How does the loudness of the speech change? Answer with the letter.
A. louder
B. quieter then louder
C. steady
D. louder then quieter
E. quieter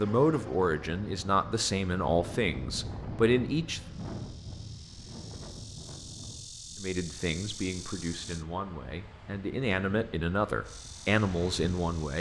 B.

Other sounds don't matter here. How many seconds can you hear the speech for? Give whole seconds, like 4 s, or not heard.
9 s.